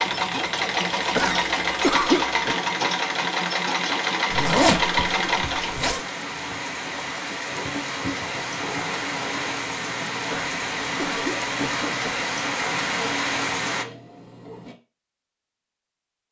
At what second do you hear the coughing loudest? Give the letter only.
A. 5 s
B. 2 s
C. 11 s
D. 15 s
B.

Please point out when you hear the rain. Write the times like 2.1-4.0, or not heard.
0.0-13.8.